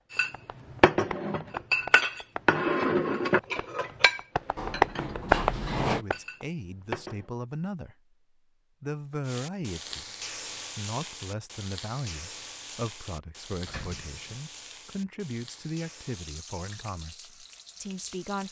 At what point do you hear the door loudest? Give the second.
6 s.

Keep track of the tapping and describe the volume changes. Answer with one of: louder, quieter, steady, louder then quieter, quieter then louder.
quieter then louder.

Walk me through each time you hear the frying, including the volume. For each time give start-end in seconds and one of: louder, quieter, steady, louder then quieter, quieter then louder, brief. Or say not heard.
9.2-18.4 quieter.